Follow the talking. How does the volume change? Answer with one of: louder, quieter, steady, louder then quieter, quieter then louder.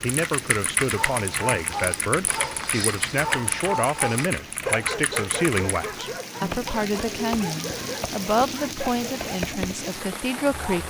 steady.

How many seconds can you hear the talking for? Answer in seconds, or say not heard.
11 s.